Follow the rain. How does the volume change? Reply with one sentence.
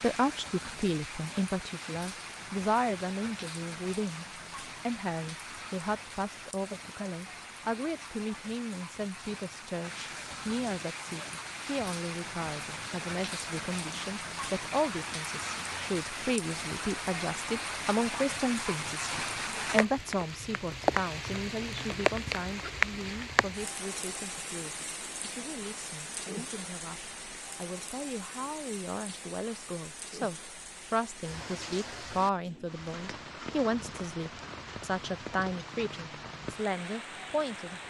The volume of the rain goes up, then down.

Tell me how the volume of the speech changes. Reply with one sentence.
The loudness of the speech goes down, then up.